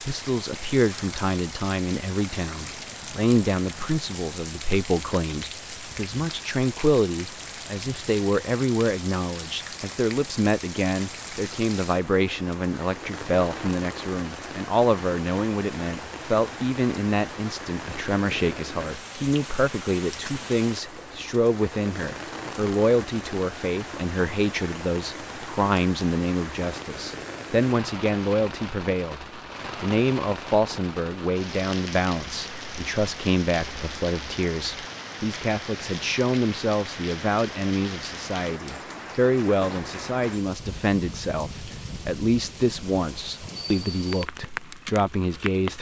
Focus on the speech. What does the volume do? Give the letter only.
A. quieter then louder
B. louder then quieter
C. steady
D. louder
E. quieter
C.